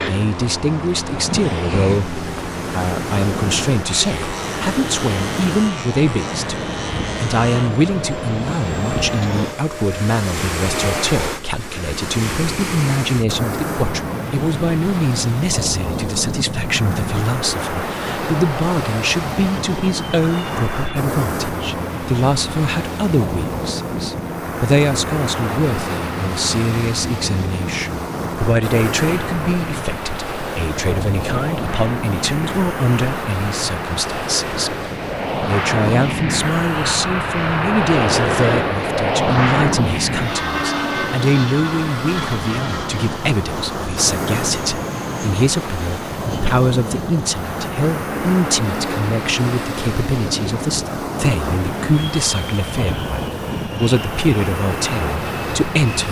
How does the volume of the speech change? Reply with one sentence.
The volume of the speech stays about the same.